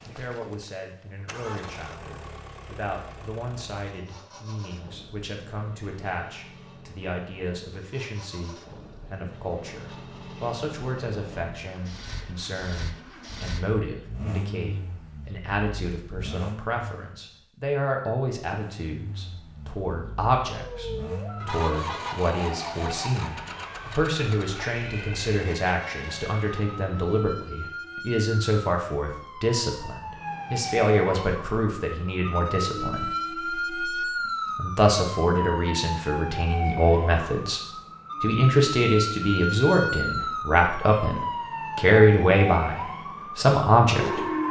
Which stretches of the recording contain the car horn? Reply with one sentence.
The car horn can be heard from 21.4 to 22.2 s.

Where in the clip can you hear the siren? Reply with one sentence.
The siren can be heard from 20.6 to 44.4 s.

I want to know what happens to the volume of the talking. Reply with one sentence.
The loudness of the talking goes up.